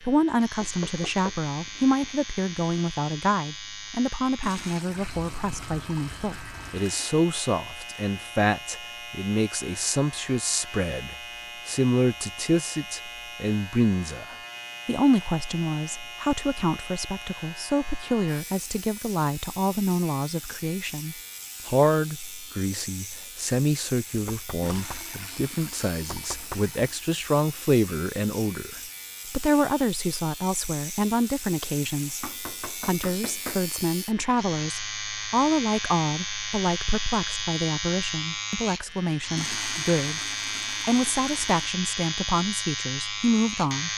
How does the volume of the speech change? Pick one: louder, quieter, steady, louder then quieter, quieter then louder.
steady.